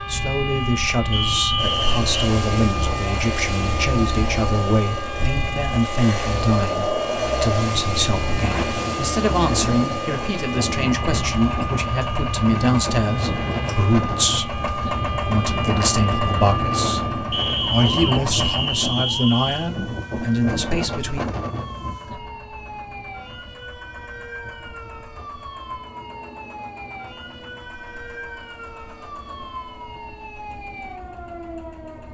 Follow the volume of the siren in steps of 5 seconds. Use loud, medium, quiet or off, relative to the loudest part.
loud, loud, loud, loud, medium, medium, medium.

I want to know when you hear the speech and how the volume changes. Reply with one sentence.
The speech can be heard from 0.0 to 21.4 s, at a steady volume.